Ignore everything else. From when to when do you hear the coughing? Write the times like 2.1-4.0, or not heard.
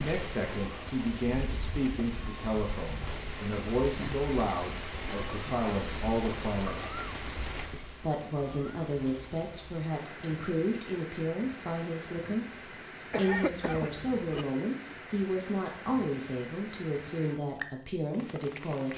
13.1-14.4.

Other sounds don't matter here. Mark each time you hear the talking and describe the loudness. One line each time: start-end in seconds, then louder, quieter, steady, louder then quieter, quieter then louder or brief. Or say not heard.
0.0-6.8 steady
7.7-18.9 steady.